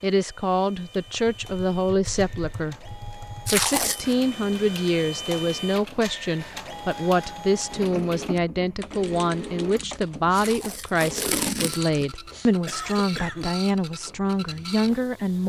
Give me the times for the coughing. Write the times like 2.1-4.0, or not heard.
12.7-13.6.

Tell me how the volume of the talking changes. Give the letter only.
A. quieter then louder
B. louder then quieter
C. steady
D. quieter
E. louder
C.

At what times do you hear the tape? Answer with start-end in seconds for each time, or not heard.
3.5-4.2, 10.3-12.1.